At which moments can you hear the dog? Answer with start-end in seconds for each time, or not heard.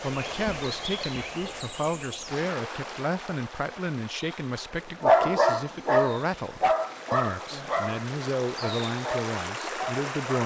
5.0-10.4.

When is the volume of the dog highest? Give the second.
5 s.